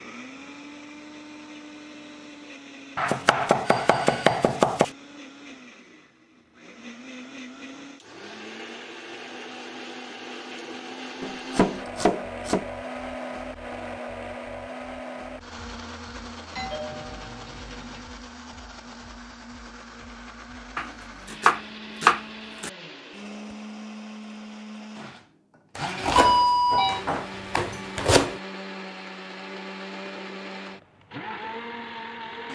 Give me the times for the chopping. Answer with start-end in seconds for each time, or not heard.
3.0-4.9, 11.2-12.7, 20.8-22.7, 25.8-28.4.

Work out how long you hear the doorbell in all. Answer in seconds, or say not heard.
3 s.